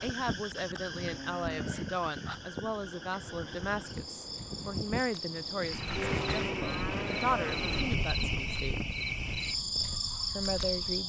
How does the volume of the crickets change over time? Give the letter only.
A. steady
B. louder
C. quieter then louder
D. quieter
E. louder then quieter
B.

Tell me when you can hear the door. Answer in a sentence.
You can hear the door from 5.7 to 6.5 s.